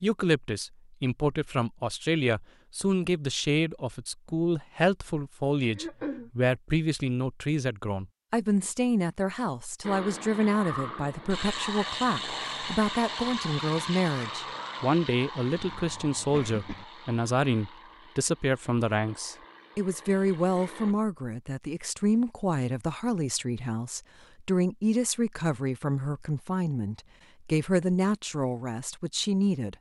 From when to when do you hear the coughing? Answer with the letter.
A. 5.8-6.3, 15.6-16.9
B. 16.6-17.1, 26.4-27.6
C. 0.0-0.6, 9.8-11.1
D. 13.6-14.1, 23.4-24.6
A.